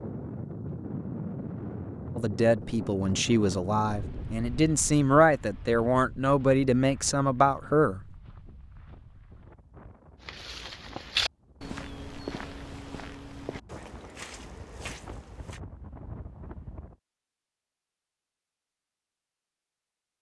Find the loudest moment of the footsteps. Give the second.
11 s.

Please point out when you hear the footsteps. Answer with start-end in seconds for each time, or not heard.
10.2-15.6.